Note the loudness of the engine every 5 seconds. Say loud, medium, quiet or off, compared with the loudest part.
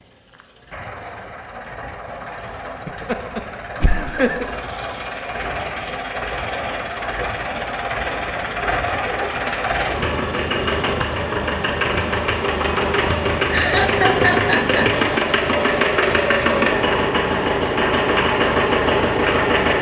quiet, medium, loud, loud.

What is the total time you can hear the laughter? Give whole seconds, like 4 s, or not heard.
4 s.